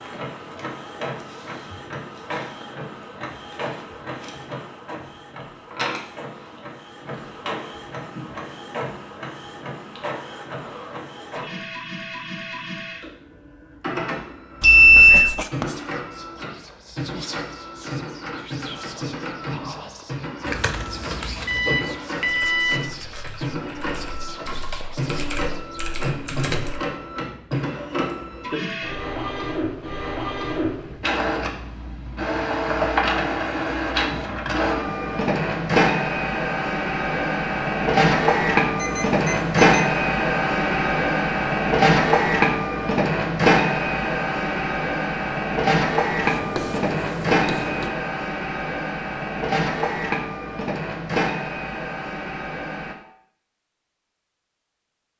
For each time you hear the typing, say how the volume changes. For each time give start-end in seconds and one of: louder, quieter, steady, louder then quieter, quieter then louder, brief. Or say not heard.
20.4-26.9 quieter then louder.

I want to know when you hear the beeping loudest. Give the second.
15 s.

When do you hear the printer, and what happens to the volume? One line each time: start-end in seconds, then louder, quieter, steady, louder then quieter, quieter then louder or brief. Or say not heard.
0.0-53.0 louder.